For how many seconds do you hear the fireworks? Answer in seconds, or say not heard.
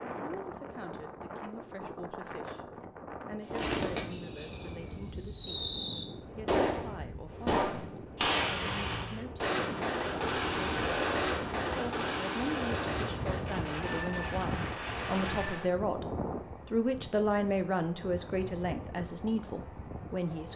12 s.